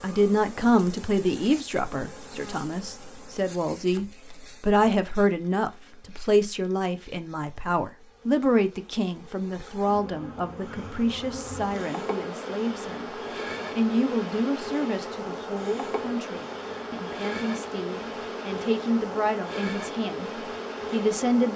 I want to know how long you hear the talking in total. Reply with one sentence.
The talking can be heard for 21 seconds in total.